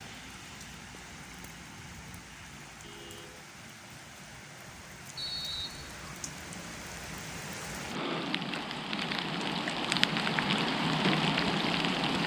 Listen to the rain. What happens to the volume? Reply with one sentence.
The loudness of the rain goes up.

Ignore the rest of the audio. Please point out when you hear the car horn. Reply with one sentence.
You can hear the car horn from 2.8 to 3.5 s.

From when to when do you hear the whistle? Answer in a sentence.
You can hear the whistle from 5.2 to 6.0 s.